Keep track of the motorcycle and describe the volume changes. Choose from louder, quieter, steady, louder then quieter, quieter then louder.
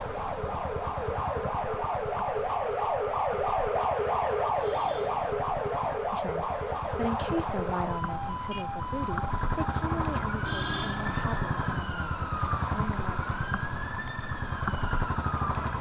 louder.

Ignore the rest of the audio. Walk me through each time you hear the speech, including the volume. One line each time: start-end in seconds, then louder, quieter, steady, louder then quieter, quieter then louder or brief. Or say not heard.
6.1-13.2 quieter.